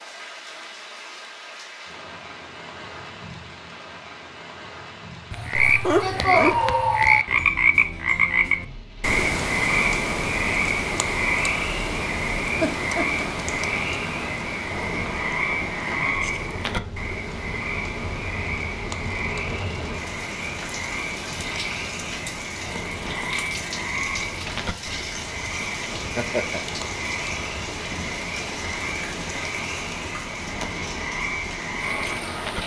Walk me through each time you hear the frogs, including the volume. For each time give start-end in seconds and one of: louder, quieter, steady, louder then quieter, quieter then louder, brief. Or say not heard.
5.3-32.6 quieter.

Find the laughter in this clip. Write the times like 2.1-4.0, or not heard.
5.5-6.5, 12.6-13.2, 25.9-26.6.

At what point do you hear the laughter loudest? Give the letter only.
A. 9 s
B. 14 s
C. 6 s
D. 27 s
C.